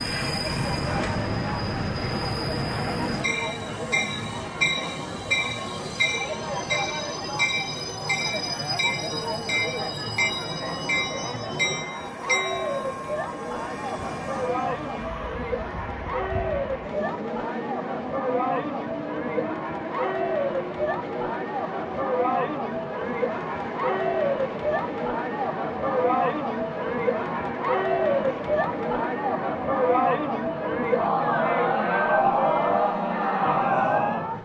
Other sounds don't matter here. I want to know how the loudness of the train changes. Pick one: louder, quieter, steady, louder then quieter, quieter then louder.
quieter.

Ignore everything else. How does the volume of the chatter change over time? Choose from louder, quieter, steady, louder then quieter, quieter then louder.
louder.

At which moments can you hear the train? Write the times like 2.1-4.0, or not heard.
0.0-34.3.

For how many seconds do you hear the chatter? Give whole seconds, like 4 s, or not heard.
34 s.